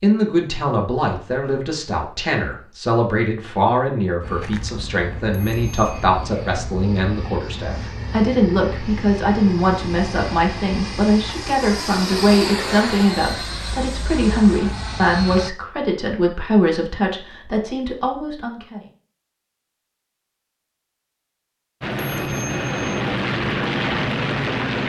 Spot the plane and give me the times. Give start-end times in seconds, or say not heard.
4.2-15.5, 21.8-24.8.